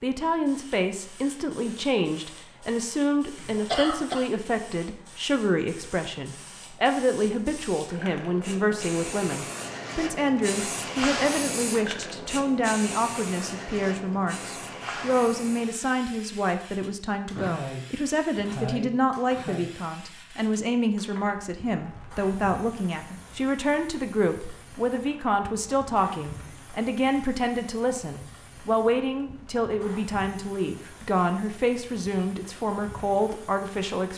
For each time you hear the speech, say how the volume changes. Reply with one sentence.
You can hear the speech from 0.0 to 34.1 s, at a steady volume.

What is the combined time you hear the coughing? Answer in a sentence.
The coughing can be heard for 3 seconds in total.